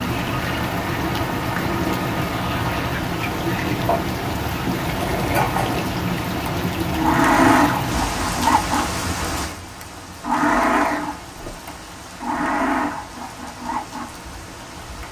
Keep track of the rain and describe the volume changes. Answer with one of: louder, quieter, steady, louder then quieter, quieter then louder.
quieter.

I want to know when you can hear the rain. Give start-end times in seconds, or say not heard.
0.0-15.0.